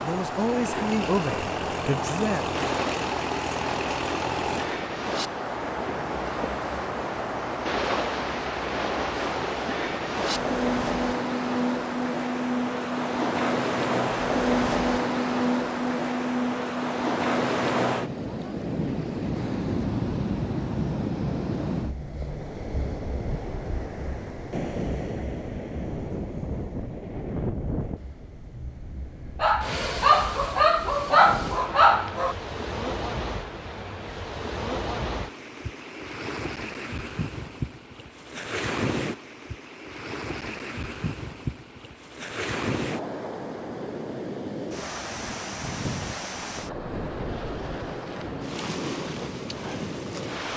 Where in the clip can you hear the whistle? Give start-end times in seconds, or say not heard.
not heard.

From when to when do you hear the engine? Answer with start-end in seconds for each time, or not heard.
0.0-4.8.